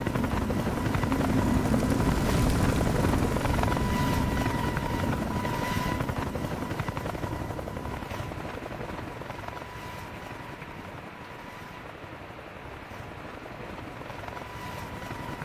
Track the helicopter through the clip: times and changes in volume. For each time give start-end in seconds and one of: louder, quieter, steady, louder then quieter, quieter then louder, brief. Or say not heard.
0.0-15.3 quieter.